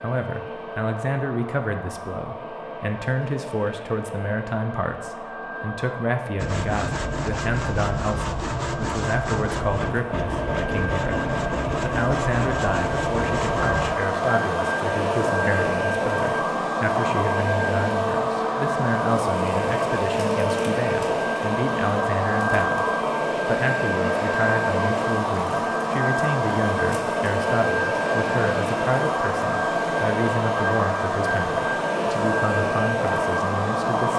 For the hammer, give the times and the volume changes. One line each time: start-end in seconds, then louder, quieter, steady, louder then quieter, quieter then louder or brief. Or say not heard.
not heard.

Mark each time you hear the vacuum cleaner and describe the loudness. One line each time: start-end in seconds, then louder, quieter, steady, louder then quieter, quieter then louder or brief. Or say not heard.
0.0-34.1 louder.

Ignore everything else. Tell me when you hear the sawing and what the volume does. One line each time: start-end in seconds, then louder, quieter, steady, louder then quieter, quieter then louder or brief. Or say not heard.
6.3-13.9 steady.